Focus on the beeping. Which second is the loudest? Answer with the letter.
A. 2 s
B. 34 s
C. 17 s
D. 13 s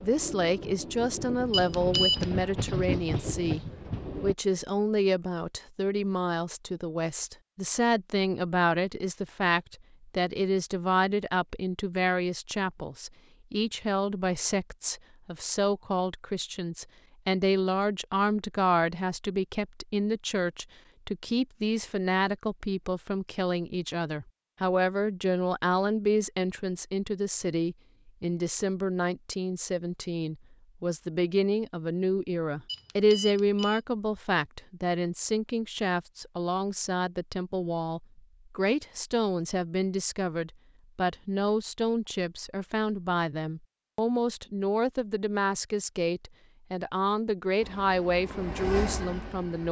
A.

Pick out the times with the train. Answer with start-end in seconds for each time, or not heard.
0.0-4.3, 47.6-49.6.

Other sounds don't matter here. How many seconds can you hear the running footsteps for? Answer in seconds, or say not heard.
not heard.